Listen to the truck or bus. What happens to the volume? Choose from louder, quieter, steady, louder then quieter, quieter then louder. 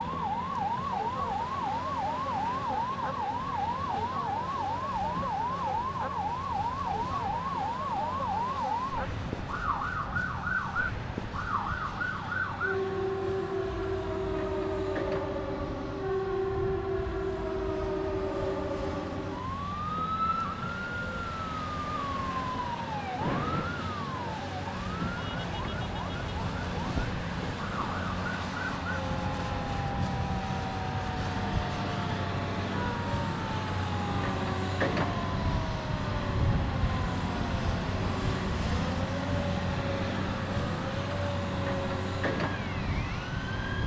louder.